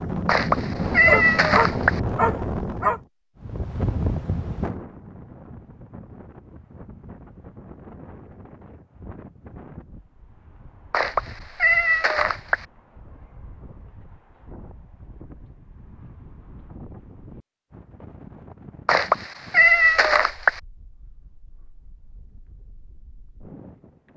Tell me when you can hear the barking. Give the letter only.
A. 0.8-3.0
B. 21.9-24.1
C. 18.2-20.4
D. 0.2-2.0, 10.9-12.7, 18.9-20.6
A.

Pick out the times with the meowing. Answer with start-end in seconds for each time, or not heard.
0.2-2.0, 10.9-12.7, 18.9-20.6.